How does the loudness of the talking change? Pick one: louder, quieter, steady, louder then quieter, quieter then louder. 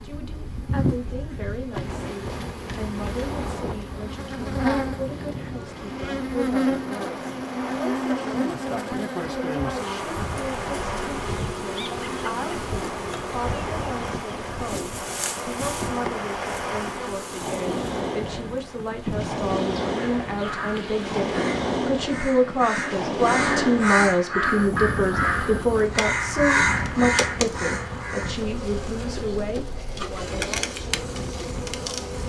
louder.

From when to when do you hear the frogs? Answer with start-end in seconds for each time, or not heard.
not heard.